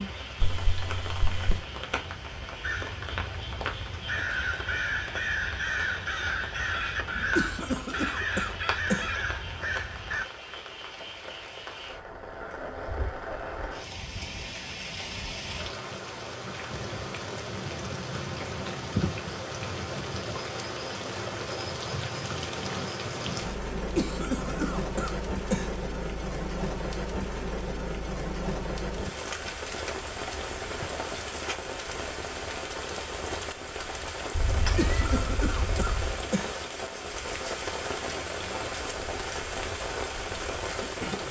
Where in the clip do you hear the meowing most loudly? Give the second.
35 s.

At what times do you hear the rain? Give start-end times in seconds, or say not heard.
0.0-41.2.